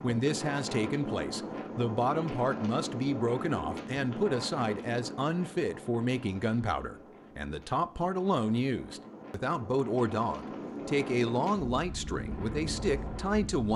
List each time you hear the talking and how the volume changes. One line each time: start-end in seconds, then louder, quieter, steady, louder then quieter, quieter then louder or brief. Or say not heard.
0.0-13.7 steady.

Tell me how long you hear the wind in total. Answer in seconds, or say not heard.
14 s.